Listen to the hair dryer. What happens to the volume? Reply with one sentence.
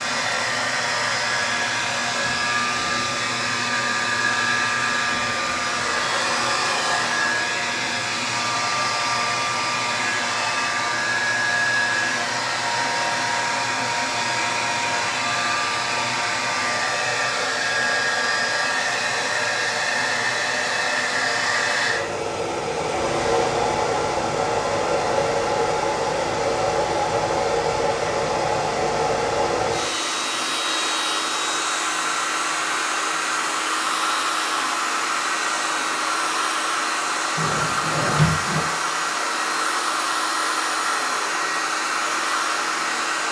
The volume of the hair dryer stays about the same.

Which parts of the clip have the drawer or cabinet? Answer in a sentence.
You can hear the drawer or cabinet from 37.4 to 38.6 s.